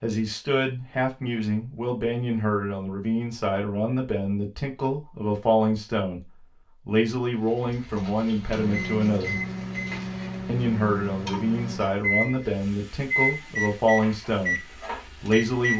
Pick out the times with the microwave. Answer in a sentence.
The microwave can be heard from 8.6 to 15.7 s.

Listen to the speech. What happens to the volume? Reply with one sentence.
The volume of the speech stays about the same.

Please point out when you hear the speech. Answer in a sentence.
You can hear the speech from 0.0 to 9.4 s and from 10.4 to 15.7 s.